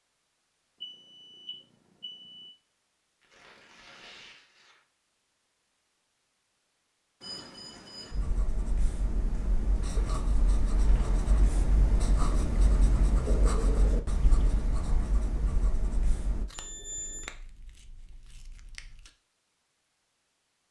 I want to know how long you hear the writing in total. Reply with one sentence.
You can hear the writing for 8 seconds altogether.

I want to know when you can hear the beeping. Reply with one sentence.
You can hear the beeping from 0.8 to 2.5 s, from 7.2 to 8.2 s and from 16.5 to 17.3 s.